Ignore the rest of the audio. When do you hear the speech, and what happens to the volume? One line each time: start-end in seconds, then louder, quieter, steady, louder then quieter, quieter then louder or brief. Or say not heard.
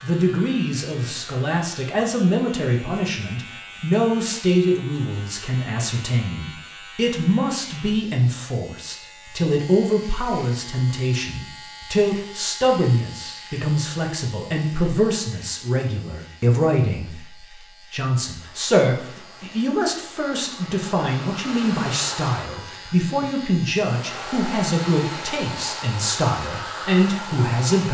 0.0-27.8 steady.